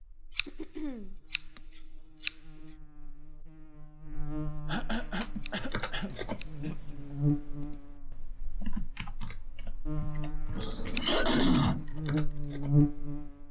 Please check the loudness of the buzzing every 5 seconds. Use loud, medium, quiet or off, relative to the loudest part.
quiet, medium, loud.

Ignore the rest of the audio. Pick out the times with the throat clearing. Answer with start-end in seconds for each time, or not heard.
0.5-1.6, 4.7-7.0, 10.6-11.8.